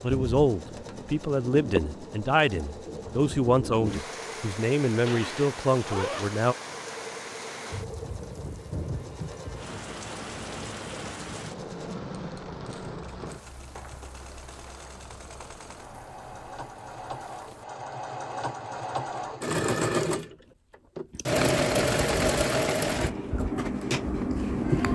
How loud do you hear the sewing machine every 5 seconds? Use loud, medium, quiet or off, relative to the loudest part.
quiet, quiet, quiet, medium, loud.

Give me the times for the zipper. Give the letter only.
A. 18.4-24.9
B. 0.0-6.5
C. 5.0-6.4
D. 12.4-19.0
C.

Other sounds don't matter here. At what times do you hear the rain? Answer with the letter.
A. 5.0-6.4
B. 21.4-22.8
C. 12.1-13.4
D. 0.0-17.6
D.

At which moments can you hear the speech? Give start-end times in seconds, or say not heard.
0.0-6.5.